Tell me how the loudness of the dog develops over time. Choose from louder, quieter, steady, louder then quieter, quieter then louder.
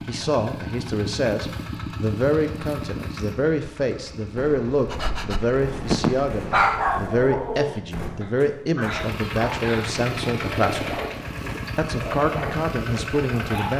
quieter.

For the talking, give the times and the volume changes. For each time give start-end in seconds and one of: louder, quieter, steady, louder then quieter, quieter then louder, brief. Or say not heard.
0.1-11.0 steady
11.8-13.7 brief.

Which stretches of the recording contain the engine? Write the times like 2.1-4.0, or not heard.
0.0-6.7, 8.9-13.7.